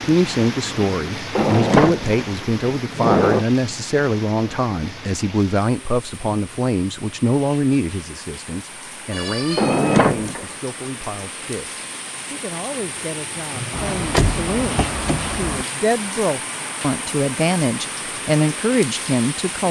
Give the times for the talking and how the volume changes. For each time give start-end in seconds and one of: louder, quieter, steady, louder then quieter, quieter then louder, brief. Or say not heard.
0.0-19.6 quieter then louder.